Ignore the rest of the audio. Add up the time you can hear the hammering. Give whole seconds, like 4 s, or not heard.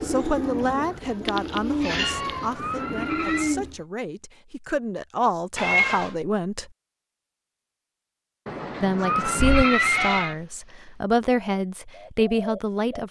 not heard.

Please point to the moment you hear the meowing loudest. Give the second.
6 s.